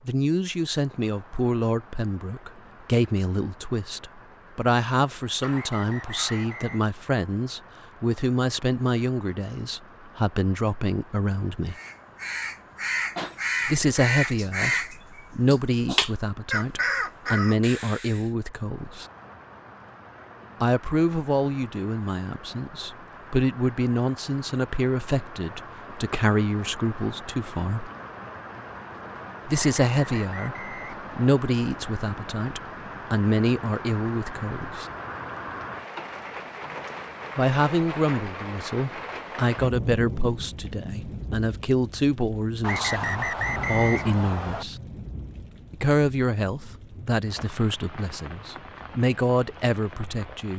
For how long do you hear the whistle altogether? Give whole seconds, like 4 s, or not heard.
5 s.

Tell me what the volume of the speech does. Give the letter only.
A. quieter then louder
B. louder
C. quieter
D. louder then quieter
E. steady
E.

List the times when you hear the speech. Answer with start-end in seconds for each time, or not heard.
0.1-11.8, 13.7-19.1, 20.6-27.9, 29.4-34.9, 37.4-44.8, 45.7-50.5.